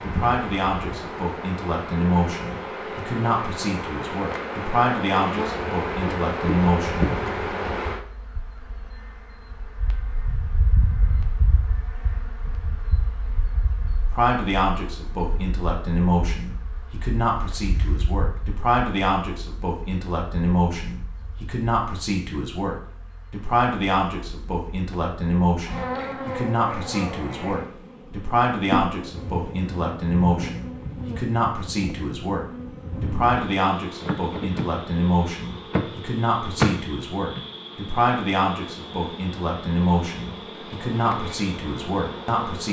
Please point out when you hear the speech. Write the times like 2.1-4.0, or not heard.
0.0-7.1, 14.1-42.6.